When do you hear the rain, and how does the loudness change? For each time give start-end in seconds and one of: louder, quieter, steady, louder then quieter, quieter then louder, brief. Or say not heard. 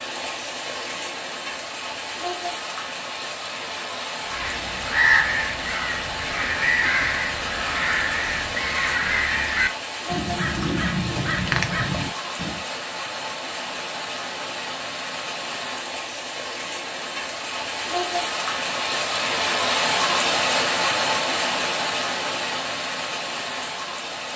0.0-24.3 louder.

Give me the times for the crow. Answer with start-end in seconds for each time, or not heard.
4.2-12.7.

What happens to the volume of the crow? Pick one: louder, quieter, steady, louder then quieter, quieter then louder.
steady.